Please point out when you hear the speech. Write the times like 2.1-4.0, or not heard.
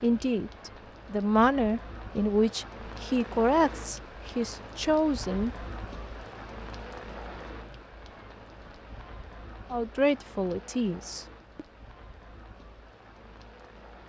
0.0-5.5, 9.7-11.7.